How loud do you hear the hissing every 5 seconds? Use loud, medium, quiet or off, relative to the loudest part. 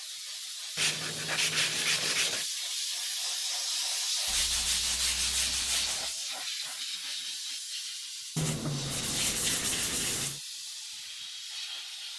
loud, loud, medium.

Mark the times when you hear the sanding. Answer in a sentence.
The sanding can be heard from 0.8 to 2.5 s, from 4.2 to 6.2 s and from 8.3 to 10.4 s.